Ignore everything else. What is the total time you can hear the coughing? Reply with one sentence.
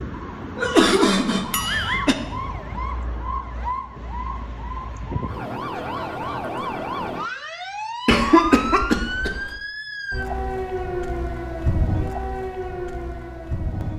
You can hear the coughing for 3 seconds altogether.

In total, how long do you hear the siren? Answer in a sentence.
The siren can be heard for 14 seconds in total.